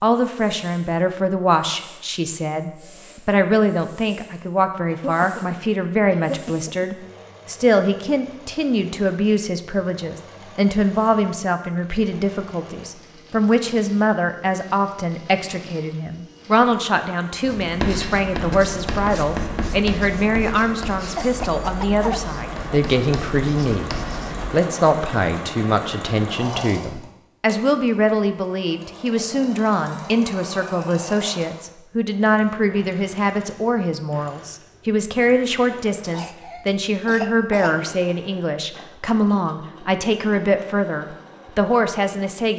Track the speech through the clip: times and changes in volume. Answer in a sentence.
The speech can be heard from 0.0 to 42.5 s, at a steady volume.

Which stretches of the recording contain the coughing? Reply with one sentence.
The coughing can be heard from 4.8 to 6.8 s, from 21.1 to 22.2 s and from 36.0 to 37.8 s.